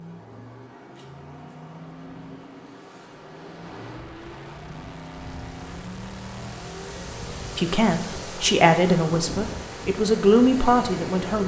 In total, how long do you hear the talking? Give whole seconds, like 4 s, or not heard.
4 s.